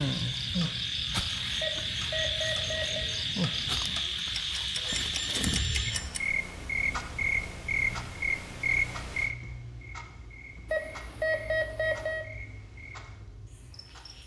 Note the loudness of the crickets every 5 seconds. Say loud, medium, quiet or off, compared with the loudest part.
loud, loud, quiet.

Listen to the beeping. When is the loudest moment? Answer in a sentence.
The loudest moment of the beeping is at 11 seconds.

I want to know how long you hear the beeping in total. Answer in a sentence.
The beeping can be heard for 4 seconds in total.